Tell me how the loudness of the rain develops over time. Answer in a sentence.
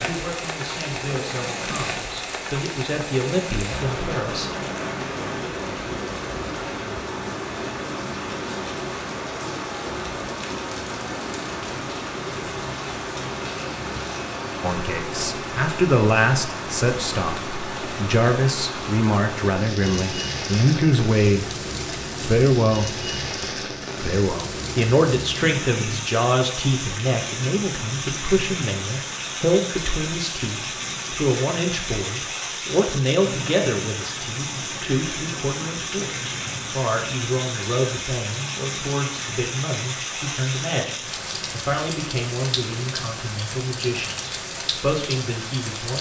The loudness of the rain stays about the same.